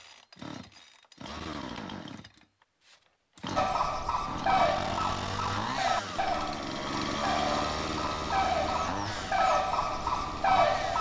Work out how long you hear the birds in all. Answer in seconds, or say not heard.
7 s.